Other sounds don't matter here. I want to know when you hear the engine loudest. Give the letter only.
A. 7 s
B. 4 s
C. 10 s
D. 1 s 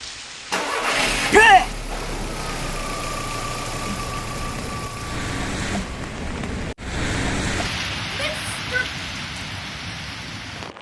D.